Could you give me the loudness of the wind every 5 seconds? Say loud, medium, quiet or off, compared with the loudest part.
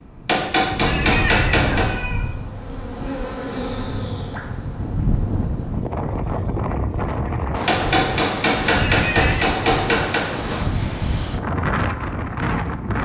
medium, loud, loud.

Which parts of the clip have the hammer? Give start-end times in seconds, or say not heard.
0.2-1.9, 7.7-10.2.